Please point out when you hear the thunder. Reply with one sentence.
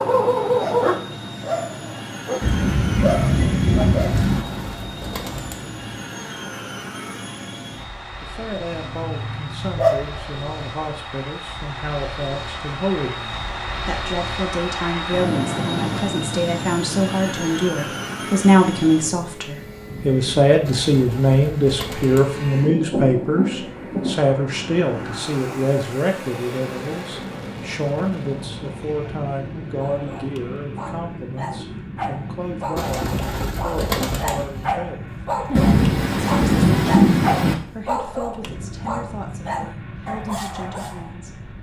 The thunder can be heard from 2.4 to 4.5 s, from 22.6 to 24.2 s and from 35.5 to 37.5 s.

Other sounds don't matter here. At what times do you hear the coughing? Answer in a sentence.
The coughing can't be heard in this clip.